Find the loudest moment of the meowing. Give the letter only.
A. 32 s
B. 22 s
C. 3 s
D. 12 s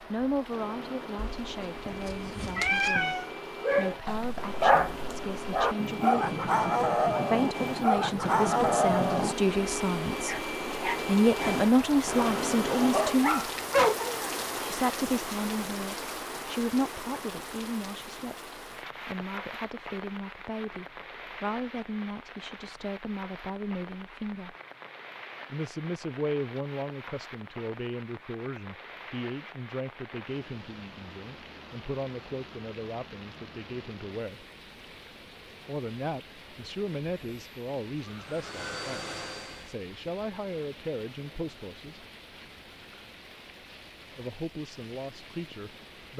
C.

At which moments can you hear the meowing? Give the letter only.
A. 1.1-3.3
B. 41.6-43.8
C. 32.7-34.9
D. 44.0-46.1
A.